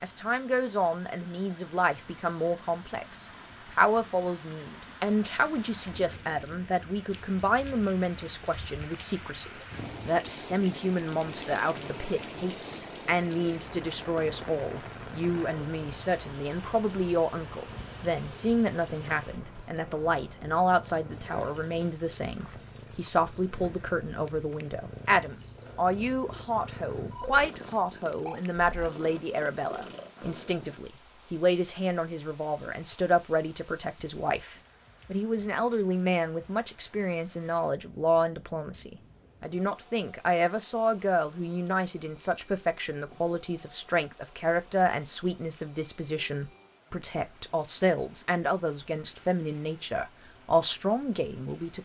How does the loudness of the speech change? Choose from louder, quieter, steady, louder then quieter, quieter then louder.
steady.